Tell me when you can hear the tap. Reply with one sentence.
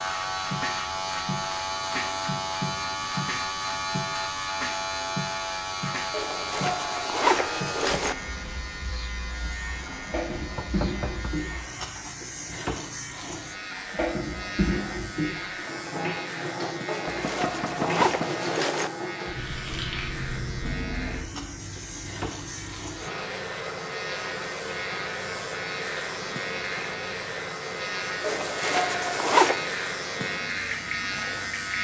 The tap can be heard from 9.2 to 31.7 s.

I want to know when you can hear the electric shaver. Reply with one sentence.
The electric shaver can be heard from 0.0 to 31.7 s.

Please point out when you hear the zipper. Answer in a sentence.
You can hear the zipper from 6.1 to 8.2 s, from 16.9 to 18.9 s and from 28.2 to 29.6 s.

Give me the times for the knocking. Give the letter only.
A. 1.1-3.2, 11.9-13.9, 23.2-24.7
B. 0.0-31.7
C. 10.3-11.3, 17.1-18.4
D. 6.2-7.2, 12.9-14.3
C.